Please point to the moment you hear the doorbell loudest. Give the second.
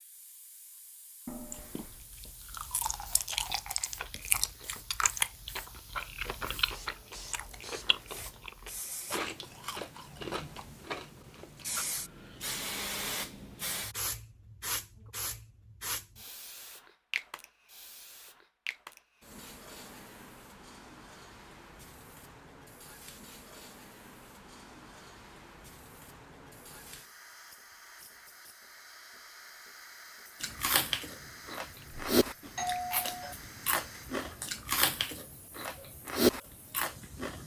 33 s.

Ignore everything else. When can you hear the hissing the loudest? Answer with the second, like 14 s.
13 s.